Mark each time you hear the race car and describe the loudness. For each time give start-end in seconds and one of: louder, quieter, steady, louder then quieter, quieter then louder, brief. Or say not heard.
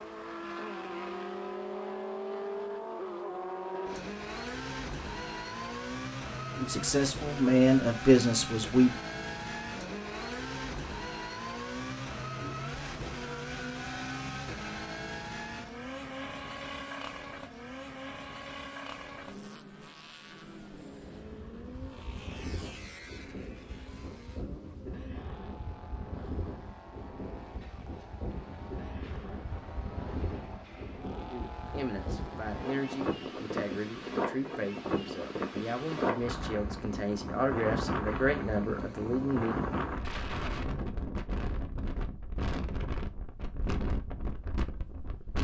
0.0-33.0 quieter.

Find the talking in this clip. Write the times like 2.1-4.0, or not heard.
6.5-8.9, 31.3-39.5.